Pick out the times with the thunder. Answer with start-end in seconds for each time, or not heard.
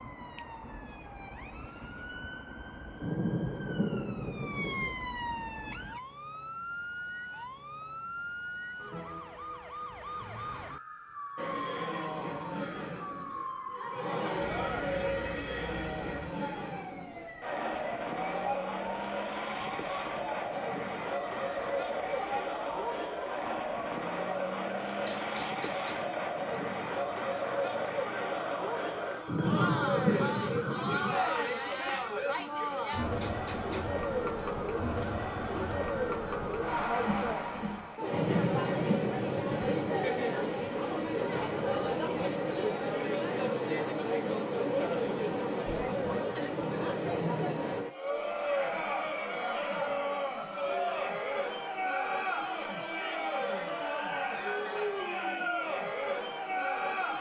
3.0-5.0, 29.2-31.2, 38.1-40.0.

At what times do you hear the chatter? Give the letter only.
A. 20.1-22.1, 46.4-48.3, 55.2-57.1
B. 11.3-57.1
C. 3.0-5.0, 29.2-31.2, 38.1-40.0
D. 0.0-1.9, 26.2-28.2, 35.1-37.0
B.